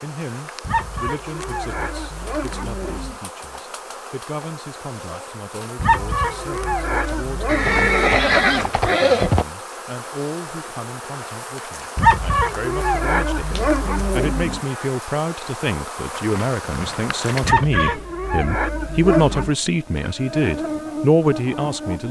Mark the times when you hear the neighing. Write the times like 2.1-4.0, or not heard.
7.5-9.4, 16.1-17.9.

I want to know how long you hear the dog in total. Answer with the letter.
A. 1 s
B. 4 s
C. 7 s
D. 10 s
D.